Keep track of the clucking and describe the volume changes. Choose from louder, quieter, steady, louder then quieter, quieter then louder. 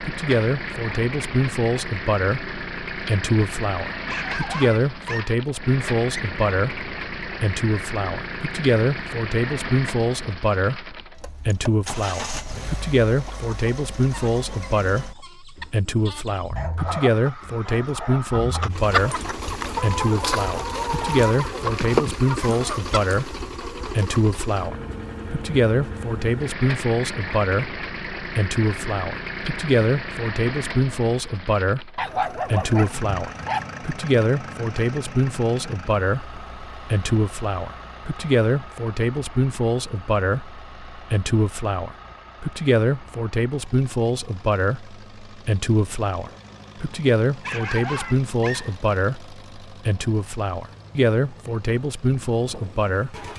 louder.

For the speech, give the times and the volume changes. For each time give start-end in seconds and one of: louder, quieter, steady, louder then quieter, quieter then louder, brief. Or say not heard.
0.0-53.3 steady.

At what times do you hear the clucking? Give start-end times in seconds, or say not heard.
13.2-24.2.